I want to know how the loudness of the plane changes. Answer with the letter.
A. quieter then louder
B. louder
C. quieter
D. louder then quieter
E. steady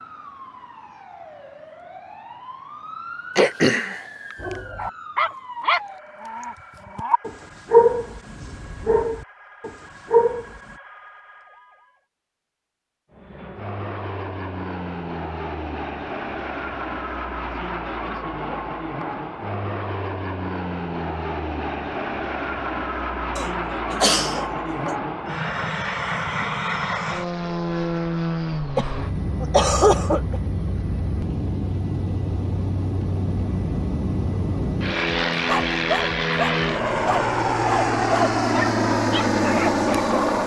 B.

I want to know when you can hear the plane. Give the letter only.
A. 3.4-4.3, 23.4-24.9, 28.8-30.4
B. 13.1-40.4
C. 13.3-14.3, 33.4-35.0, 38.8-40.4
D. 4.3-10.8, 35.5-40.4
B.